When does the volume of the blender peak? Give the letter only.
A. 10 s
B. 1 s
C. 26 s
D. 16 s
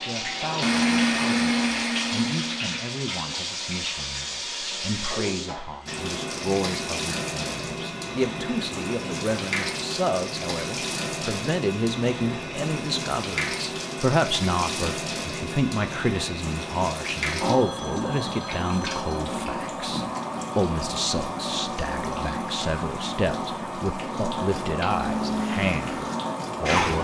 B.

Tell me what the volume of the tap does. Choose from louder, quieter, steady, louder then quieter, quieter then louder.
steady.